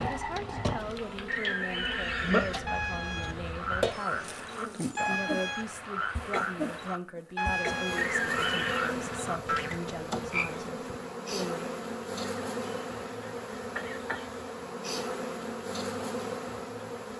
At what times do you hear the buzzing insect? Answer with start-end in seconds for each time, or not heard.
0.0-17.1.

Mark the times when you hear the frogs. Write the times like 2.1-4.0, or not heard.
0.0-10.4.